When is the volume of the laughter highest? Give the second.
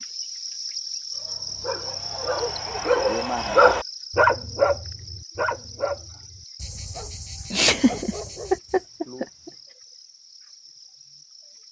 8 s.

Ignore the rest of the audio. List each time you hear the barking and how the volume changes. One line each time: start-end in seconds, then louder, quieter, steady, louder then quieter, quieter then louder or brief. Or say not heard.
1.1-8.8 louder then quieter.